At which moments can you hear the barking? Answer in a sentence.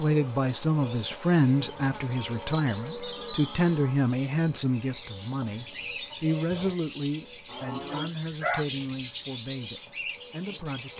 The barking can be heard from 6.1 to 6.8 s and from 7.7 to 8.7 s.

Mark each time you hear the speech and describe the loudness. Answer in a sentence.
The speech can be heard from 0.0 to 10.9 s, getting quieter.